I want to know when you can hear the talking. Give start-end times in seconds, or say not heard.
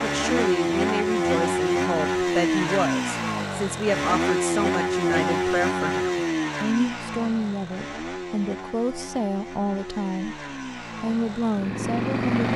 0.0-10.4, 11.0-12.3.